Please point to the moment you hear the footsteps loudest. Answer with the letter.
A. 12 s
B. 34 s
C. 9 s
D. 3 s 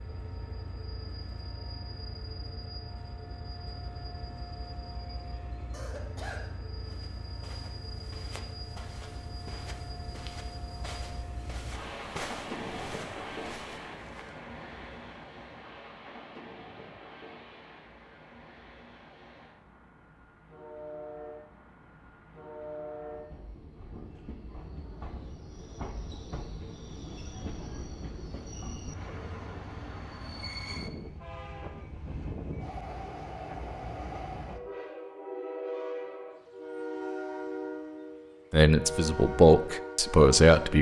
A.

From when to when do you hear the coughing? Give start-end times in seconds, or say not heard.
5.7-6.5.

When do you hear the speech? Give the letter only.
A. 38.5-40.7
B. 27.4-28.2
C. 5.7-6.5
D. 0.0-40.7
A.